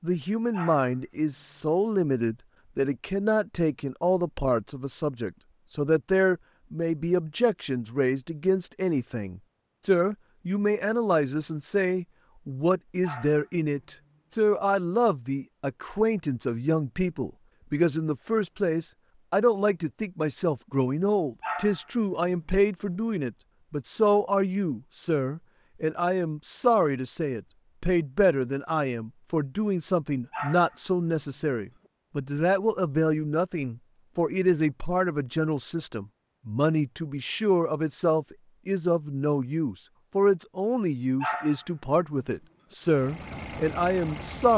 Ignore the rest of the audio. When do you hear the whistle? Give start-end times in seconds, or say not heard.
not heard.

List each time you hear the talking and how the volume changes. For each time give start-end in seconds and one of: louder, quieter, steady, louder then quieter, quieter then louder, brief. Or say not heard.
0.0-44.5 steady.